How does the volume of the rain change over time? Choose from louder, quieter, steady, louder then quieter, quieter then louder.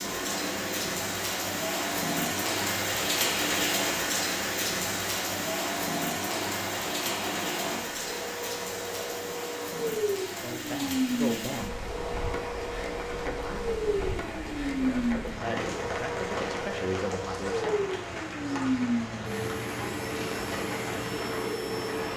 quieter.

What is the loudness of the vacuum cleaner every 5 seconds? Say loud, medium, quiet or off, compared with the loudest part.
medium, loud, loud, loud, loud.